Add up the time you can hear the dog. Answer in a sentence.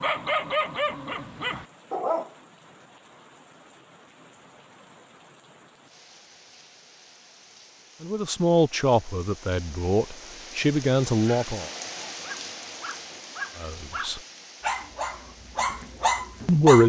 The dog can be heard for 8 seconds in total.